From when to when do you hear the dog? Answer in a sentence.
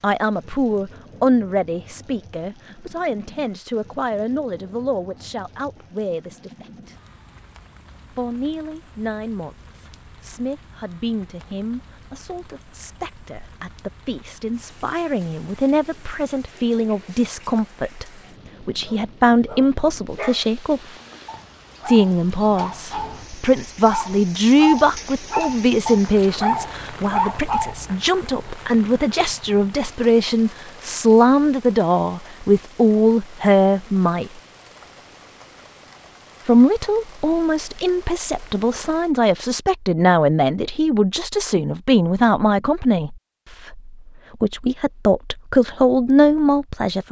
The dog can be heard from 18.9 to 27.9 s.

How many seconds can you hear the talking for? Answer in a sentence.
The talking can be heard for 43 seconds in total.